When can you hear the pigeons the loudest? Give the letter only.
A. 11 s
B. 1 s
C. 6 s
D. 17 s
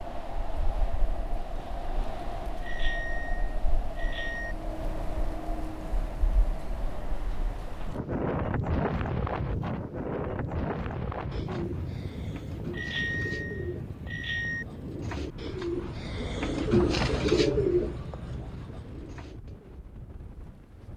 D.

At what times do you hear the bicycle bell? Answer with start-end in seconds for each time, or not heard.
2.6-4.5, 12.7-14.7.